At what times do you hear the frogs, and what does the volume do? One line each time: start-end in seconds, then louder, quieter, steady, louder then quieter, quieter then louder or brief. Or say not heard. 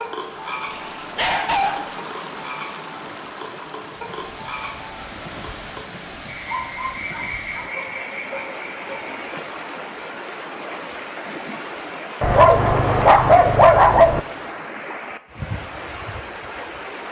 0.0-9.3 steady.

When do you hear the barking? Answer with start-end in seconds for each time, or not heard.
0.7-1.9, 6.5-7.8, 12.2-14.2.